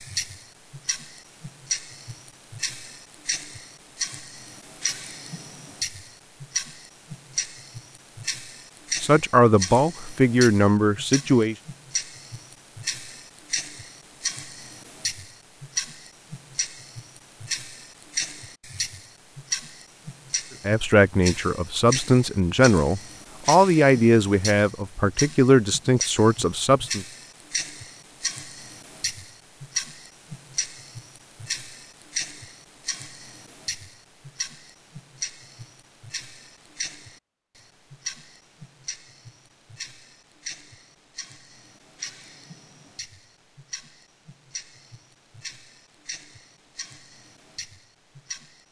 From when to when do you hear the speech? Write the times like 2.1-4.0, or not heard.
9.0-11.6, 20.6-27.1.